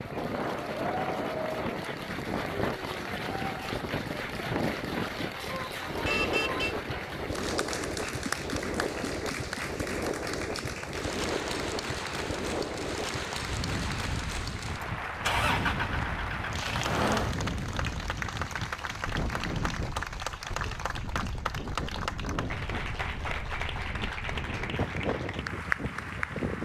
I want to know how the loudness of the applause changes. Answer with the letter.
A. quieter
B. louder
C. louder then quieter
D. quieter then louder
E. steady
E.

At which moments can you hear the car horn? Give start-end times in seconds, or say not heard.
5.5-6.8.